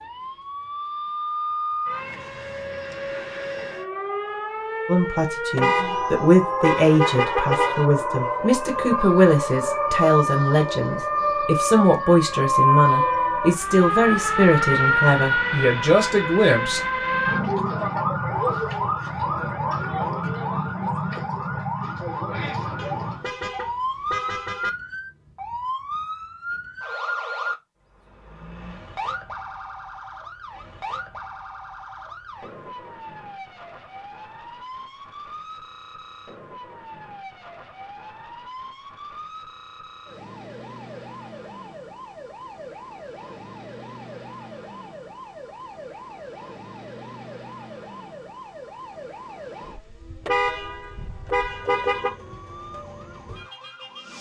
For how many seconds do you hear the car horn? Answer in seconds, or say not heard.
6 s.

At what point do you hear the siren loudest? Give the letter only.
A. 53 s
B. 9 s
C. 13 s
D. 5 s
C.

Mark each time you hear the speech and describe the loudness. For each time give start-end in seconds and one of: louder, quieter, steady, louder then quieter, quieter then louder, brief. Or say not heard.
4.8-16.8 steady.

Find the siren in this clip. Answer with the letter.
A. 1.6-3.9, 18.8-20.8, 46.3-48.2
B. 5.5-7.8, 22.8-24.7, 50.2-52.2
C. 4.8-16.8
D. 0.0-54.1
D.